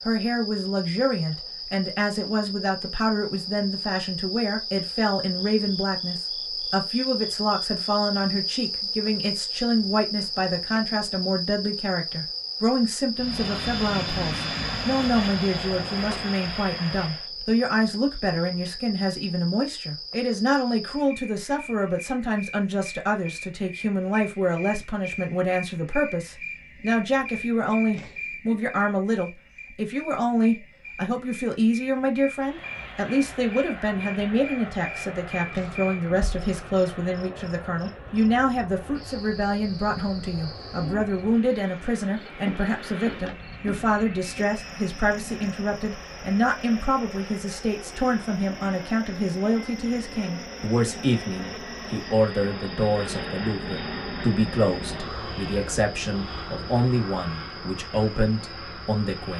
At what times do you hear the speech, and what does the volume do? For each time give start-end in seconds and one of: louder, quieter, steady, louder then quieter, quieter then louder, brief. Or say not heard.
0.1-59.3 steady.